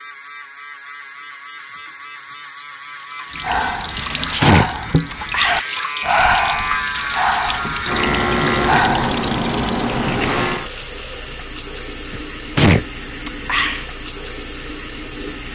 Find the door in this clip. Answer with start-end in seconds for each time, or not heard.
not heard.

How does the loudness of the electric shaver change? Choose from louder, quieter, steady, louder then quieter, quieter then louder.
louder.